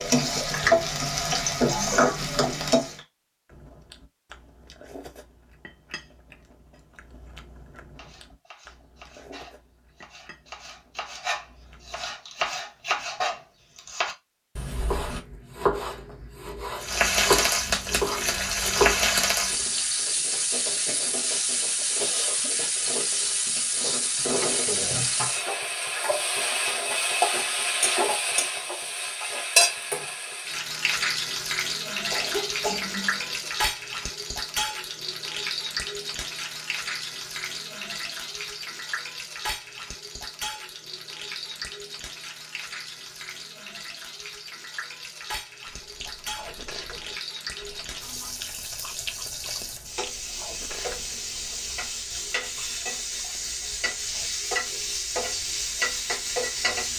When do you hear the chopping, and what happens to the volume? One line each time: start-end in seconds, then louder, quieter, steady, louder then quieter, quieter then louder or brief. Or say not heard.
8.0-19.6 louder.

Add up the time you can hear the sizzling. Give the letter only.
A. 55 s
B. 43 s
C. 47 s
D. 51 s
B.